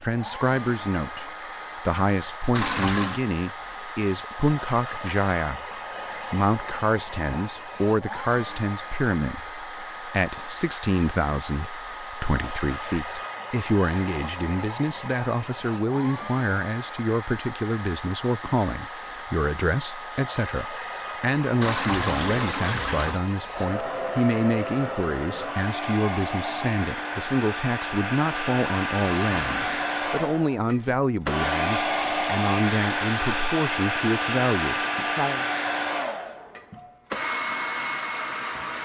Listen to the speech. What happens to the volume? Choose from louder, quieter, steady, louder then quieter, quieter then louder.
steady.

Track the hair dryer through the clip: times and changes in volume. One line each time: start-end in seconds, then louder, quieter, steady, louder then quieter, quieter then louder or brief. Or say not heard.
0.0-38.8 louder.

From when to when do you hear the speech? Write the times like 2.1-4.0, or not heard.
0.0-5.7, 6.3-35.5.